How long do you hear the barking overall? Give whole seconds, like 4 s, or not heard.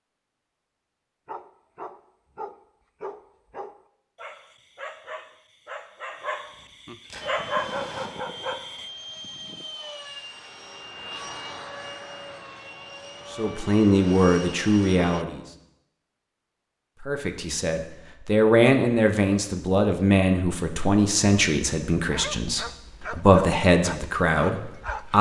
11 s.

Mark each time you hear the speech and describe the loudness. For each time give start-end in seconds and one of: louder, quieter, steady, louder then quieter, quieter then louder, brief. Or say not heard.
13.3-15.4 brief
17.0-25.1 quieter then louder.